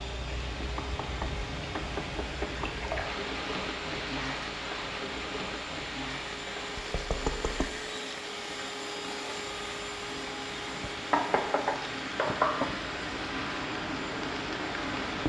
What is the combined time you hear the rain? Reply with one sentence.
You can hear the rain for 15 seconds altogether.